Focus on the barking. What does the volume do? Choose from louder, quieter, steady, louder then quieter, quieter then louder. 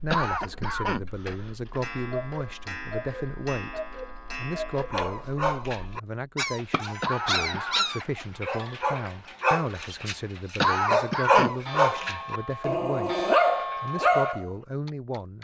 louder.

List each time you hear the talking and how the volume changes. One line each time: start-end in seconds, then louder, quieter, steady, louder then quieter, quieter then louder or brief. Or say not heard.
0.0-15.3 steady.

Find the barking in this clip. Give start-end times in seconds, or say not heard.
4.9-14.4.